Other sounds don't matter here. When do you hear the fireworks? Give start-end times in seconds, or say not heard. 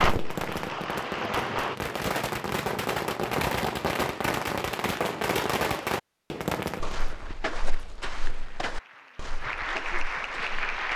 0.0-7.1.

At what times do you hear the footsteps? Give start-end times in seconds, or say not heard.
6.8-10.9.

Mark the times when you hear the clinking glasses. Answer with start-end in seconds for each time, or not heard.
not heard.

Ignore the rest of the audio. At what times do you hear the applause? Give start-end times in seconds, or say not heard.
0.0-1.8, 8.2-10.9.